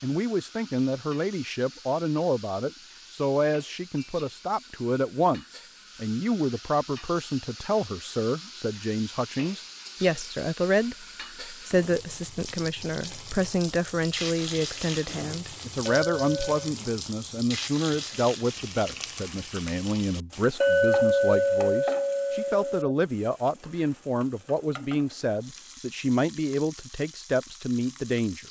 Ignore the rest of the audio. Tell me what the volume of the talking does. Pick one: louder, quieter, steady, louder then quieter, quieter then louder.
steady.